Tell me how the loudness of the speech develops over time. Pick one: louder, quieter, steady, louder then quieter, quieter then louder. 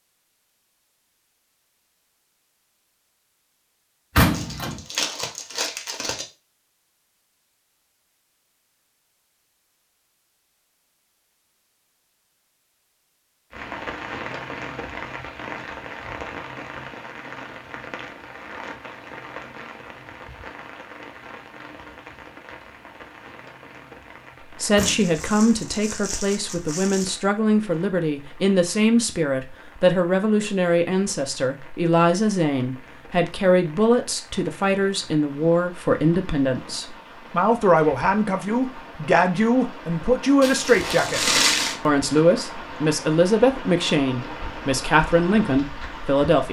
steady.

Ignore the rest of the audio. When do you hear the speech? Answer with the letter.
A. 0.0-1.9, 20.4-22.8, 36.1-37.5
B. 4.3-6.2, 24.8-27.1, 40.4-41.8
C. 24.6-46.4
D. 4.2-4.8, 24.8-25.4
C.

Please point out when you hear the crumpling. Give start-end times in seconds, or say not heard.
4.3-6.2, 24.8-27.1, 40.4-41.8.